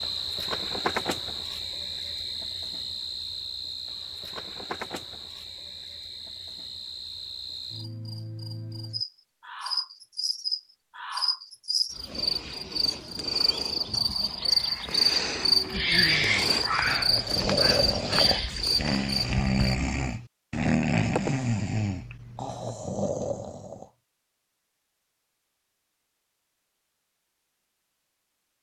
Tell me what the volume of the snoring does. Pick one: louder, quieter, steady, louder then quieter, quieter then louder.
louder then quieter.